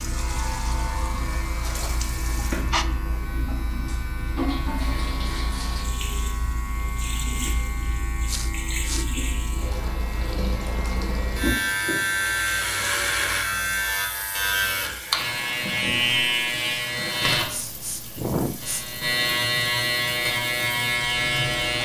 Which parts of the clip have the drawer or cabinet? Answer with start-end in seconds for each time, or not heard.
not heard.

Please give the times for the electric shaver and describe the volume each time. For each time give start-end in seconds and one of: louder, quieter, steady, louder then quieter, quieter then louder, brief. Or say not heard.
0.0-21.8 louder.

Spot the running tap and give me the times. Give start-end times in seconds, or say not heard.
0.0-21.7.